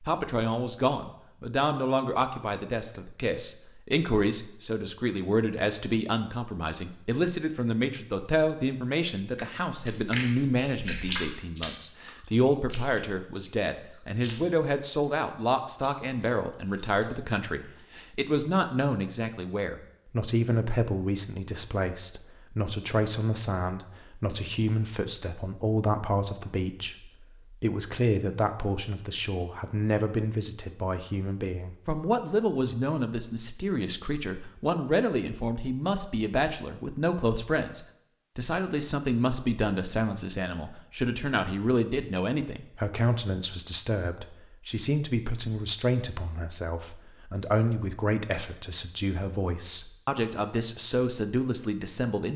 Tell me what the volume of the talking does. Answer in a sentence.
The volume of the talking stays about the same.